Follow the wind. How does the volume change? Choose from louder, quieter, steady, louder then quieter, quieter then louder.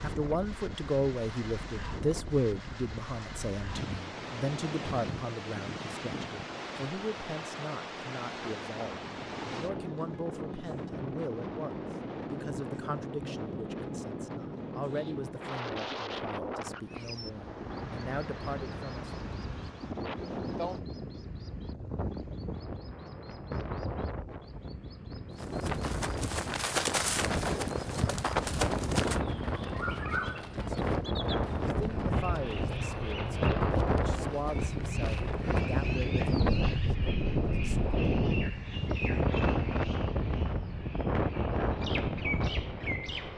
louder.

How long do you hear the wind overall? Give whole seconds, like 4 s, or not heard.
43 s.